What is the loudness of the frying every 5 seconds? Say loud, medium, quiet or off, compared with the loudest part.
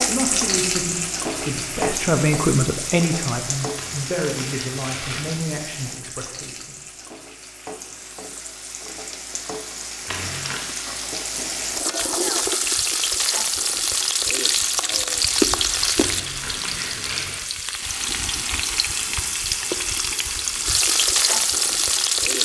medium, quiet, loud, loud, loud.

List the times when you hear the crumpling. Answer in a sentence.
You can hear the crumpling from 3.8 to 5.4 s, from 10.1 to 10.7 s and from 16.0 to 17.4 s.